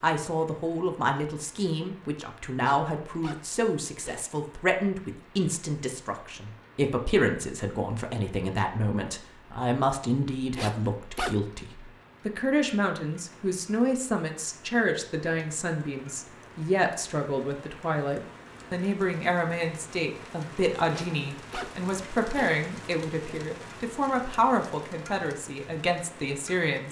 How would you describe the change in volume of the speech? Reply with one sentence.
The volume of the speech stays about the same.